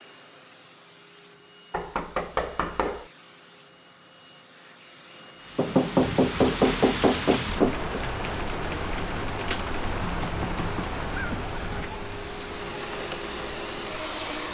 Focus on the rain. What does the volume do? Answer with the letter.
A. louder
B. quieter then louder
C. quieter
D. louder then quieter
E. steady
C.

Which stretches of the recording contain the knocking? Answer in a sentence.
The knocking can be heard from 1.7 to 3.0 s, from 5.5 to 8.0 s and from 9.8 to 11.8 s.